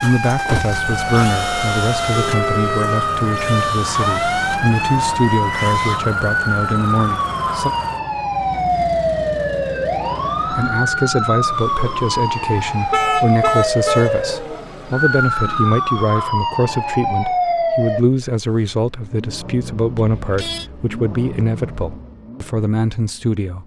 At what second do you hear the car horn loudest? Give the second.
13 s.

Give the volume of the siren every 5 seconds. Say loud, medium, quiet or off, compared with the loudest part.
loud, loud, loud, loud, off.